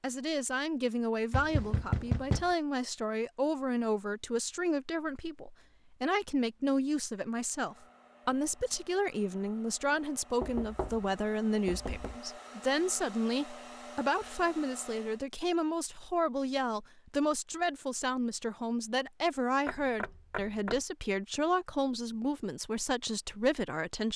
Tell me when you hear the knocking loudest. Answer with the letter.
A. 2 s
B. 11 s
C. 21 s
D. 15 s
A.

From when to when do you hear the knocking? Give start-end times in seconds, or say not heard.
1.3-2.5, 10.4-12.2, 19.6-20.8.